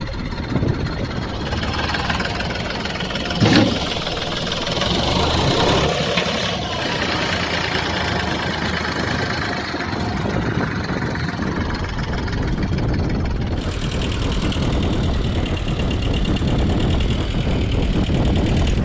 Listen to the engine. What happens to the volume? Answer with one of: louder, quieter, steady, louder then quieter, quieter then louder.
quieter.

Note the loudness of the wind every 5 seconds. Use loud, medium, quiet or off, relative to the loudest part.
medium, medium, loud, loud.